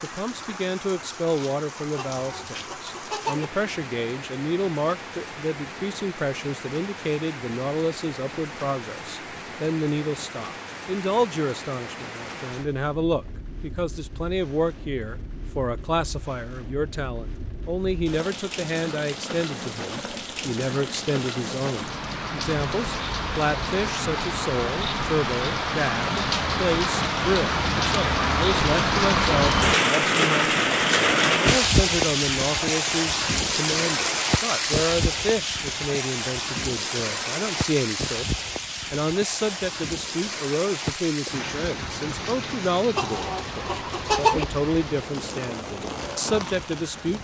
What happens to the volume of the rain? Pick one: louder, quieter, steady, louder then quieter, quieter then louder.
louder then quieter.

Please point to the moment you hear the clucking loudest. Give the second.
44 s.